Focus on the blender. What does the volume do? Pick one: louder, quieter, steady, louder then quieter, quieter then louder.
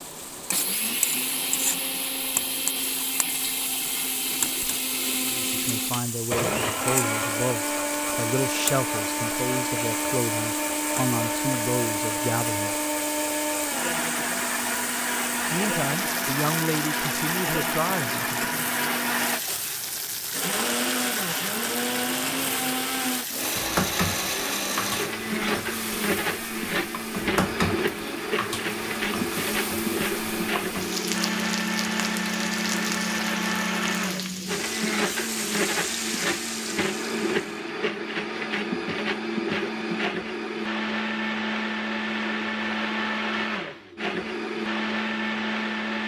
steady.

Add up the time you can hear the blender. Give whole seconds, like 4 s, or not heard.
46 s.